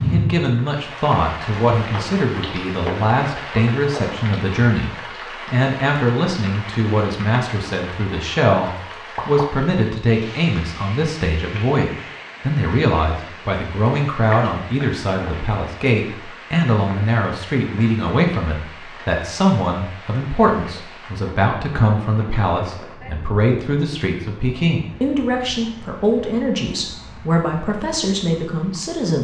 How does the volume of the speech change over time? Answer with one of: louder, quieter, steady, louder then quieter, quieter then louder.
steady.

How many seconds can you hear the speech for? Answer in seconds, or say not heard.
29 s.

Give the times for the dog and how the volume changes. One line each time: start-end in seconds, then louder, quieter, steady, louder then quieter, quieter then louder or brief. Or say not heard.
not heard.